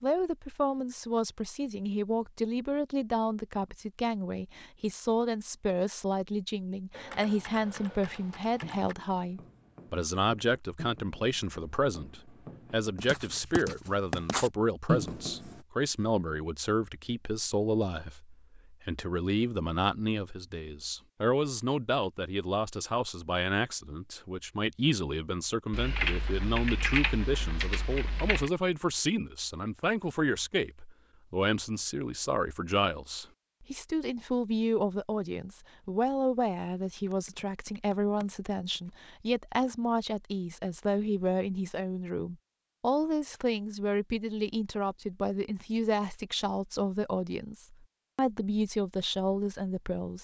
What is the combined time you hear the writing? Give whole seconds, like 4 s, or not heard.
7 s.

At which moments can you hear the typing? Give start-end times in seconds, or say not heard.
6.9-8.9, 25.7-28.5, 36.8-38.9.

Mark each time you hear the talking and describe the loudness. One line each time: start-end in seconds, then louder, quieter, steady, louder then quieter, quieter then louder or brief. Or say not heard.
0.0-50.1 steady.